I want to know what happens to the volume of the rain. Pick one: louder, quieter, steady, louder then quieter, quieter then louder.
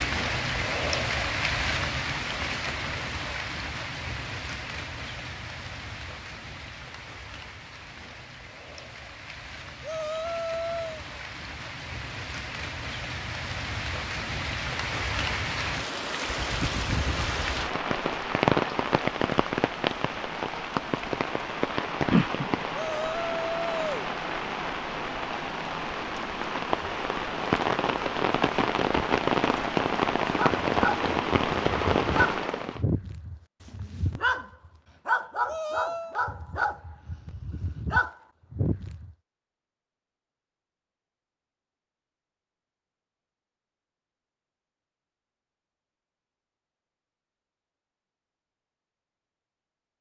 quieter then louder.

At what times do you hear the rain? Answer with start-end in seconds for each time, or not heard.
0.0-32.8.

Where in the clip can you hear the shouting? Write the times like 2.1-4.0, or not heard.
9.8-11.1, 22.7-24.1, 35.5-36.1.